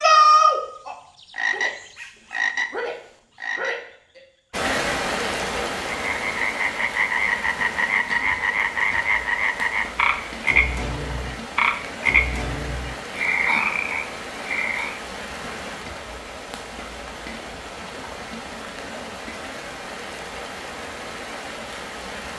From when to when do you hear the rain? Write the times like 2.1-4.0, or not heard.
4.5-22.3.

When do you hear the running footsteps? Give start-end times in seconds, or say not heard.
not heard.